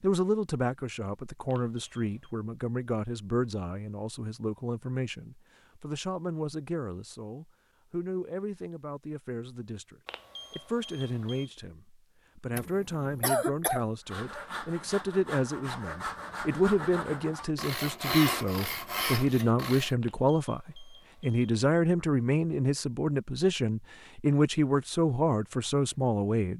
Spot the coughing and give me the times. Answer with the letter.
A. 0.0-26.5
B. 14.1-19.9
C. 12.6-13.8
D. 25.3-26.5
C.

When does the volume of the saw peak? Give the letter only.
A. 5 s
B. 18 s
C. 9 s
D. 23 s
B.